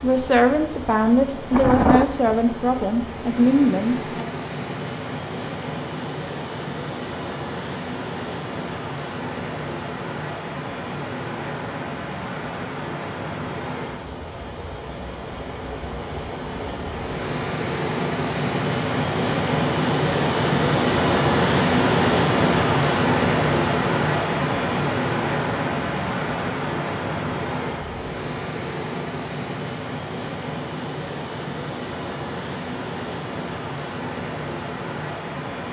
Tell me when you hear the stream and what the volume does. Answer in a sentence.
The stream can be heard from 0.0 to 35.6 s, getting louder then quieter.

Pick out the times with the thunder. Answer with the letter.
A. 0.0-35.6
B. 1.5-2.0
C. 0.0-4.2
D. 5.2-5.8
B.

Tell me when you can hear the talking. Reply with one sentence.
The talking can be heard from 0.0 to 4.2 s.